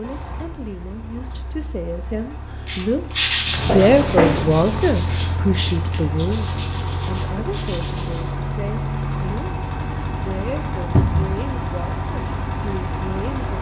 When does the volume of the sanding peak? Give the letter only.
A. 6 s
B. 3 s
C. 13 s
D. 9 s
B.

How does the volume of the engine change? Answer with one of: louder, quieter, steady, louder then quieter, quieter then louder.
louder.